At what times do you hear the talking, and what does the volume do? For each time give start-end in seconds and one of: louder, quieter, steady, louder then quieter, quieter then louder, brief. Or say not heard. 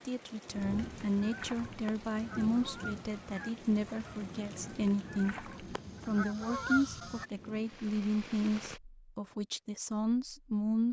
0.1-10.8 steady.